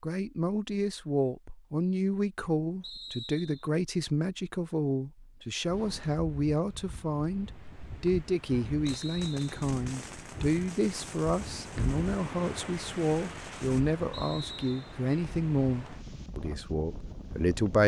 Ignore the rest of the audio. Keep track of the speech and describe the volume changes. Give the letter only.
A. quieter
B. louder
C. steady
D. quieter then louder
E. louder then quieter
C.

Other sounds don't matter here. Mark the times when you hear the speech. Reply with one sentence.
You can hear the speech from 0.0 to 17.8 s.